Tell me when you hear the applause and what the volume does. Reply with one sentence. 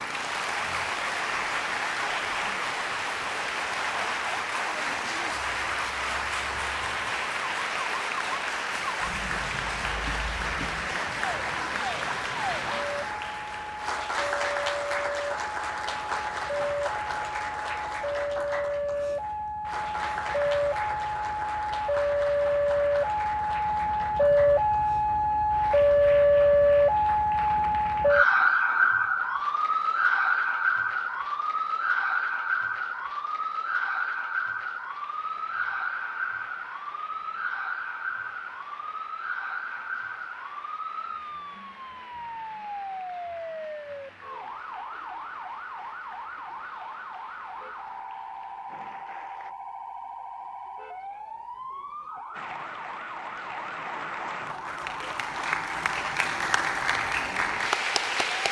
The applause can be heard from 0.0 to 49.5 s, getting quieter; and from 52.3 to 58.4 s, getting louder.